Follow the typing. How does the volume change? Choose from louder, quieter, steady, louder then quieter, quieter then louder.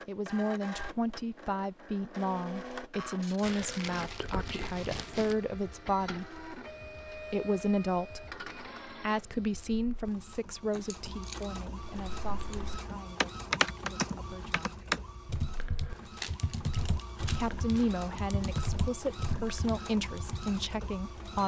quieter.